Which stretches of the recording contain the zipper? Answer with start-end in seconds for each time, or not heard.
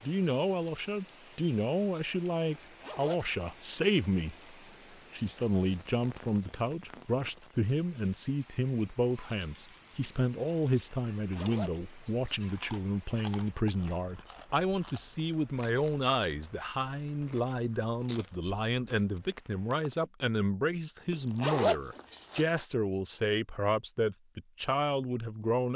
2.5-3.2, 11.3-12.8, 21.1-22.6.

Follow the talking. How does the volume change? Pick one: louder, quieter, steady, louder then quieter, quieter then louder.
steady.